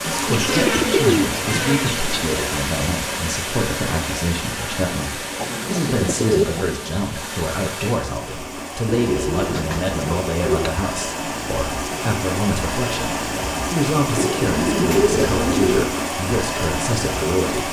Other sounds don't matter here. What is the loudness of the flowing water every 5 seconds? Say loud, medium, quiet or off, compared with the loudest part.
loud, medium, loud, loud.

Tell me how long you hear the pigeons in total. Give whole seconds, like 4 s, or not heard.
7 s.